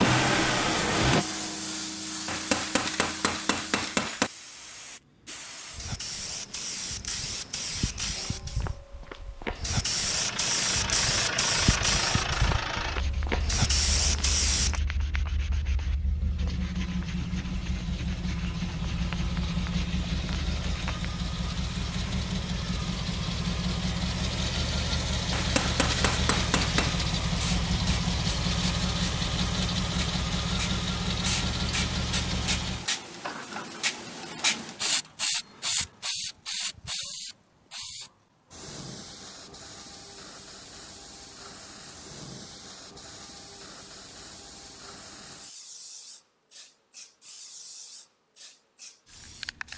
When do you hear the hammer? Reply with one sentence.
You can hear the hammer from 2.2 to 4.3 s and from 25.3 to 27.1 s.